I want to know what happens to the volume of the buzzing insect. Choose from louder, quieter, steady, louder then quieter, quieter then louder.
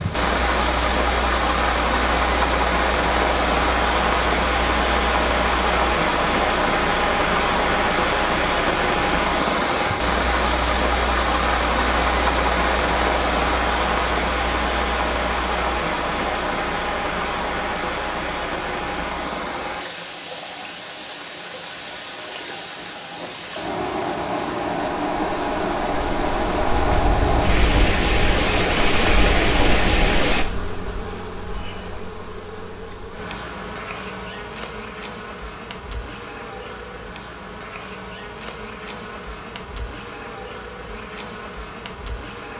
quieter.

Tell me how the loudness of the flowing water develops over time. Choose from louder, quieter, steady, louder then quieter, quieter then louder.
quieter then louder.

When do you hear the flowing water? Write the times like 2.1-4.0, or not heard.
0.0-30.4.